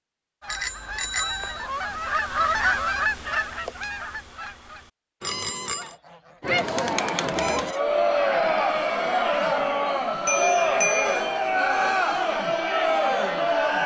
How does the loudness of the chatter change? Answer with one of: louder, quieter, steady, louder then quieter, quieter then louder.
steady.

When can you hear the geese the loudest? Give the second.
3 s.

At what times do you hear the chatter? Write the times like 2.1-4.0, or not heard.
6.4-13.8.